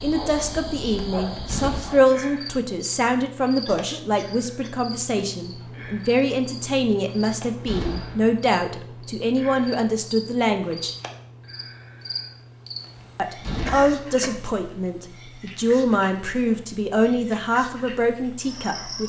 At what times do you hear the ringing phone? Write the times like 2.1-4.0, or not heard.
not heard.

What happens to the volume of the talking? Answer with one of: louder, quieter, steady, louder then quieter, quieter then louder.
steady.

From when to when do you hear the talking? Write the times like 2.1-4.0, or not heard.
0.0-10.9, 13.2-19.0.